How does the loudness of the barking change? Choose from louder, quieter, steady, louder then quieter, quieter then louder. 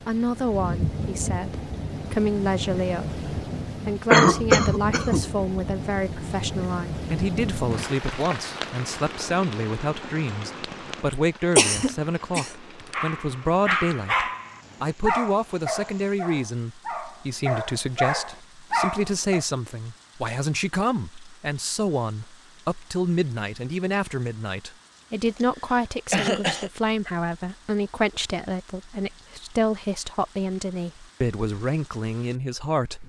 quieter then louder.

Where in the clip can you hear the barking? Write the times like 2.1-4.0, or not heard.
12.9-19.4.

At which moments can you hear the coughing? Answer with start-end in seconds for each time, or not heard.
4.1-5.2, 11.6-12.9, 25.2-26.7.